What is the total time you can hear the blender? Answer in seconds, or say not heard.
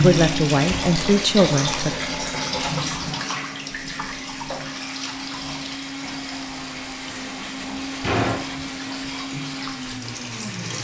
11 s.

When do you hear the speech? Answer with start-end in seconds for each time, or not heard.
0.0-1.9.